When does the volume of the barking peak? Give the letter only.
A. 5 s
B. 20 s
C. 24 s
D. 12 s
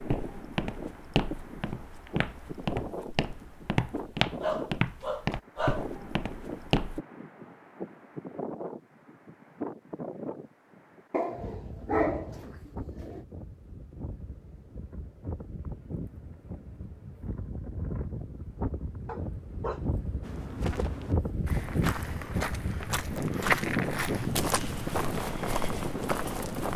D.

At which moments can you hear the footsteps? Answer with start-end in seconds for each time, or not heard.
0.0-7.0, 20.2-26.7.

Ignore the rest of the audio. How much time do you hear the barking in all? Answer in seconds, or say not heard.
4 s.